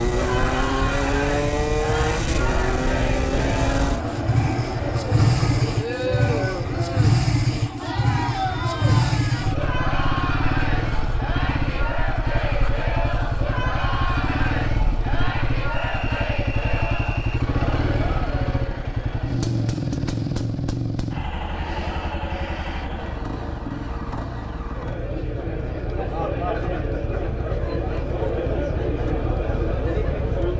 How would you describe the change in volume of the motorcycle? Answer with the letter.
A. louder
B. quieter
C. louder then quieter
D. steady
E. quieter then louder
B.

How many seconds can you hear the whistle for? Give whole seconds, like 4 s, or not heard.
2 s.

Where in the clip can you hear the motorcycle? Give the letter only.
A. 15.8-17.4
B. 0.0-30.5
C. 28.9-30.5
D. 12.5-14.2
B.